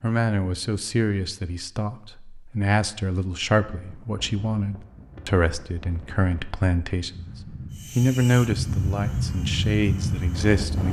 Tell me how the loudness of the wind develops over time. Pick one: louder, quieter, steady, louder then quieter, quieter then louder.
louder.